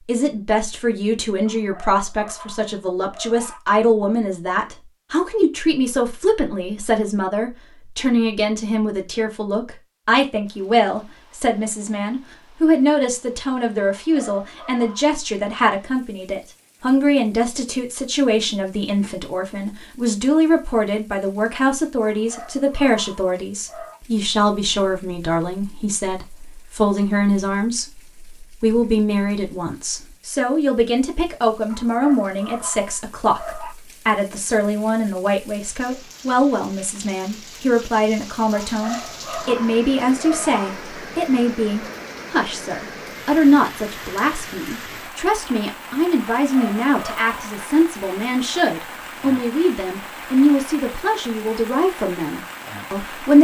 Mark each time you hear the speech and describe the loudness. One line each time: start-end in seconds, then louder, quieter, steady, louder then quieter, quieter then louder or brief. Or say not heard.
0.1-53.4 steady.